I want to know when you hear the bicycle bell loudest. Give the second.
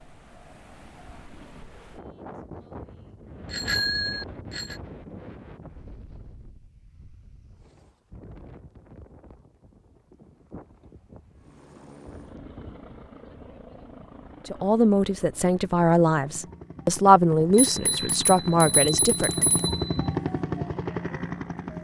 4 s.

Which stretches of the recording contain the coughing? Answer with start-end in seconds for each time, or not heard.
not heard.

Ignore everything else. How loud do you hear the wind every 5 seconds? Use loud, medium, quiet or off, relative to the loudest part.
loud, medium, medium, off, off.